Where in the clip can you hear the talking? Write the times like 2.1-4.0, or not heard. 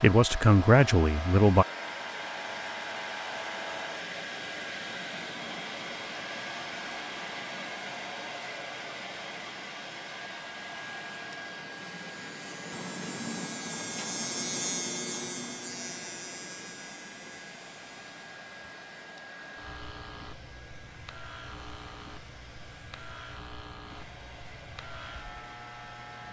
0.0-1.6.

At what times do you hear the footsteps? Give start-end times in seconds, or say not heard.
not heard.